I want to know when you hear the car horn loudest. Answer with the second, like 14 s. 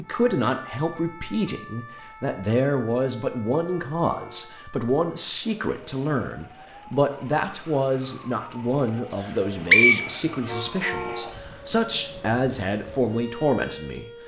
11 s.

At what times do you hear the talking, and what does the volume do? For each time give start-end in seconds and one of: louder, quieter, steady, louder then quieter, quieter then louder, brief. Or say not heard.
0.0-14.1 steady.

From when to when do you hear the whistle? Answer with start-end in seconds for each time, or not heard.
9.2-10.8.